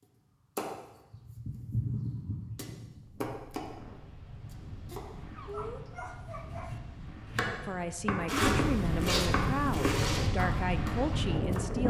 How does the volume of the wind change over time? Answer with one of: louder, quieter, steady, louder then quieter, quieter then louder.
louder.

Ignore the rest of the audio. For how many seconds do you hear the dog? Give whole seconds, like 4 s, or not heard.
2 s.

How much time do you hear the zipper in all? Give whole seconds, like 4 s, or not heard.
2 s.